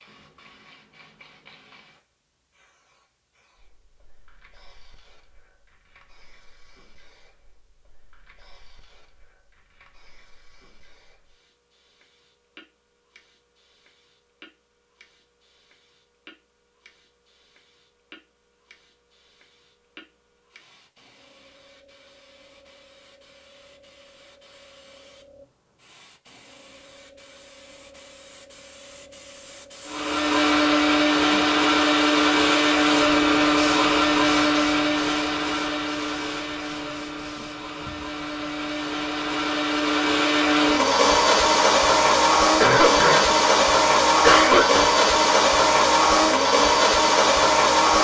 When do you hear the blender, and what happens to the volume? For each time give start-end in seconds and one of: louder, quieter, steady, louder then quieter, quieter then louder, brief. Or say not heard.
29.9-47.9 quieter then louder.